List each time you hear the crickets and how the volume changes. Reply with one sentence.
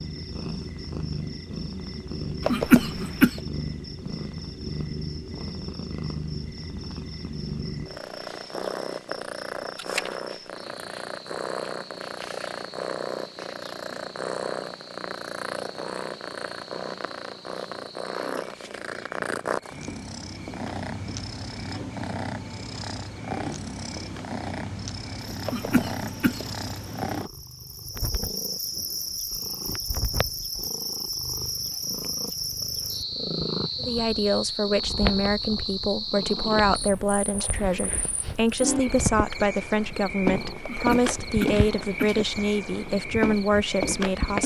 You can hear the crickets from 0.0 to 44.4 s, getting louder.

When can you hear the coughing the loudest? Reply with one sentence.
The volume of the coughing peaks at 3 seconds.